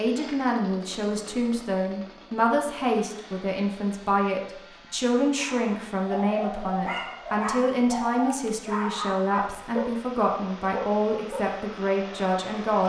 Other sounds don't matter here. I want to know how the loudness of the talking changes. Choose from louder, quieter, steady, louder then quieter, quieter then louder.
steady.